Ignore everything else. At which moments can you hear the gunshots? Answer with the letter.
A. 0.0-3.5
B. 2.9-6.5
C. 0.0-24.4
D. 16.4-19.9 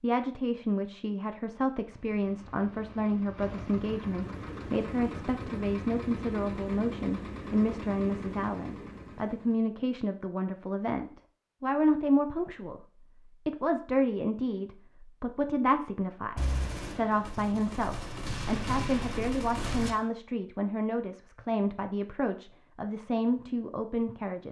D.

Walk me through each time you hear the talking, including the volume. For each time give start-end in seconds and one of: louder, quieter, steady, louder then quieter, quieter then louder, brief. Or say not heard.
0.0-24.4 steady.